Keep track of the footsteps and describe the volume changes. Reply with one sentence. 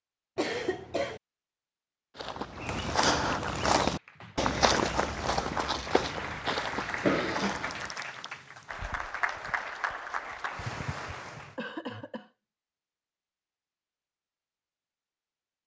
The loudness of the footsteps goes down.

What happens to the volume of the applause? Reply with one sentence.
The loudness of the applause goes up.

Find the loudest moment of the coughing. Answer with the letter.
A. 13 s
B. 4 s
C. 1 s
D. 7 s
D.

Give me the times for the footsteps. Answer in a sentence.
The footsteps can be heard from 2.1 to 8.0 s.